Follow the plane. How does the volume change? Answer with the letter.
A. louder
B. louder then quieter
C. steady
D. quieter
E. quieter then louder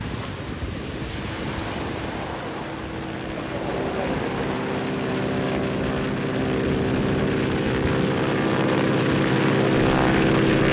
A.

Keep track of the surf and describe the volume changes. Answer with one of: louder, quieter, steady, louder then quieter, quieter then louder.
steady.